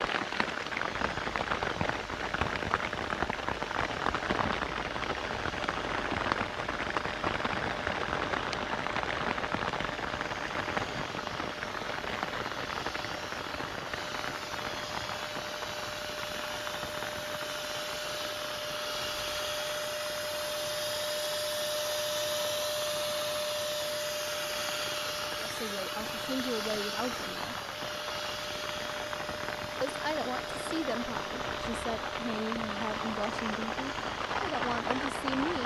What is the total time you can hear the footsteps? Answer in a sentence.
You can't hear the footsteps here.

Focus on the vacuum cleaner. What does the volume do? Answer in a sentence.
The loudness of the vacuum cleaner goes up, then down.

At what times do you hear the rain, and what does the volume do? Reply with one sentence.
You can hear the rain from 0.0 to 35.6 s, getting quieter then louder.